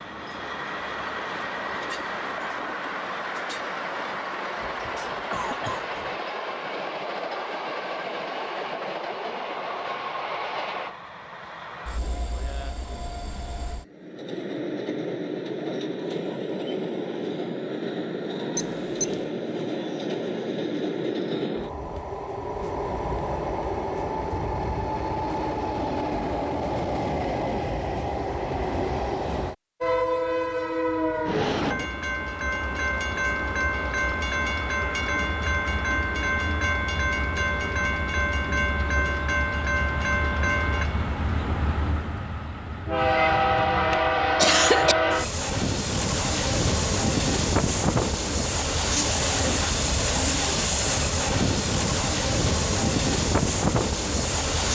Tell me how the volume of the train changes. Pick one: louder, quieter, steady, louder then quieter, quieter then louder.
louder.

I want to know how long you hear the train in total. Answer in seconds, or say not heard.
55 s.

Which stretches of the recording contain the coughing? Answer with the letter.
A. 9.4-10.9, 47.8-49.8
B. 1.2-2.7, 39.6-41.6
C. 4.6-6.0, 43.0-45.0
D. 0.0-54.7
C.